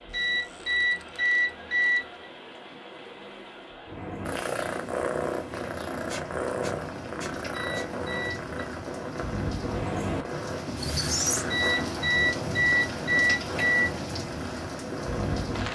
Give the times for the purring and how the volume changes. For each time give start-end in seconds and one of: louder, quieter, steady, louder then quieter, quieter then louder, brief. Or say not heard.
4.2-15.6 quieter.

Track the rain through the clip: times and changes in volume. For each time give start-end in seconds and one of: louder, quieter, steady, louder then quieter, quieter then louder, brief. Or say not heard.
0.0-15.6 louder.